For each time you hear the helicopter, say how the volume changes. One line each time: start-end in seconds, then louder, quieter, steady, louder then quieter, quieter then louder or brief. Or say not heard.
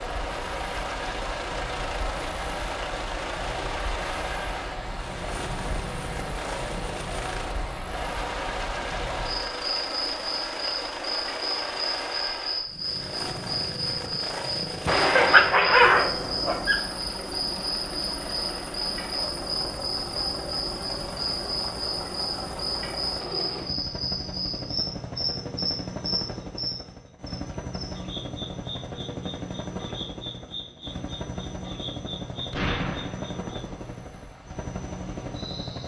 0.0-35.8 steady.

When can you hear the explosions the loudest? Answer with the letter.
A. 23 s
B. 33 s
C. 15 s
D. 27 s
C.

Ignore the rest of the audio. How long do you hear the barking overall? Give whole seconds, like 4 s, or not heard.
2 s.